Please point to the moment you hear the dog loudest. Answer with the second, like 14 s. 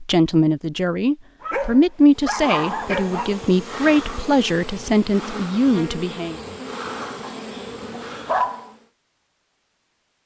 8 s.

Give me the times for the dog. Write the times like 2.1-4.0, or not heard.
1.4-3.4, 7.2-8.7.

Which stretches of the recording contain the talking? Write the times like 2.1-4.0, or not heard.
0.0-6.3.